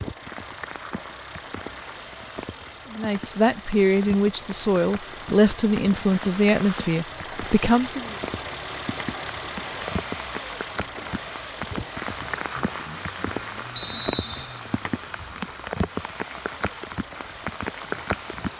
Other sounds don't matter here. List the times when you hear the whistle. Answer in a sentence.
The whistle can be heard from 13.8 to 14.6 s.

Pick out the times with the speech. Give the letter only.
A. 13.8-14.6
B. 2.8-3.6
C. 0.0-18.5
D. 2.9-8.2
D.